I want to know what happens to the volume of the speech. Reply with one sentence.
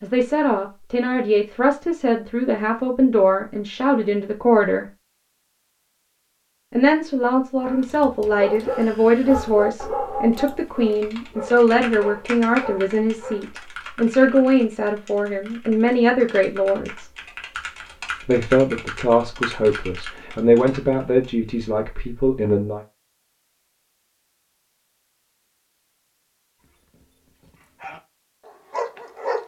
The volume of the speech stays about the same.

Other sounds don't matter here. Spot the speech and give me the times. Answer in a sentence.
The speech can be heard from 0.0 to 4.8 s, from 6.7 to 17.1 s and from 18.2 to 22.8 s.